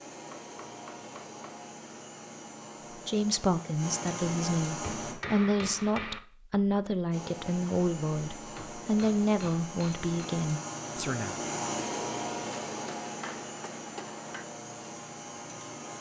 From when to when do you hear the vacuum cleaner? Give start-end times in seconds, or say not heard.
0.0-5.2, 7.1-15.9.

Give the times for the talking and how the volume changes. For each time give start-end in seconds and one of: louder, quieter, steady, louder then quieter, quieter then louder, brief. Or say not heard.
3.0-11.4 steady.